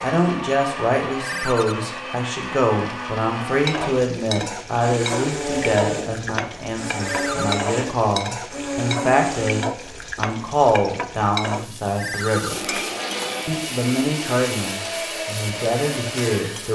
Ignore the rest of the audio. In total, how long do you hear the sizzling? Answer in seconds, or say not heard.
13 s.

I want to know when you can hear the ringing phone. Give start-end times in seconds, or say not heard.
1.2-1.8, 7.0-7.5, 11.9-12.5.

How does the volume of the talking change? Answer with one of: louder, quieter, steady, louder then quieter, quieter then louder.
steady.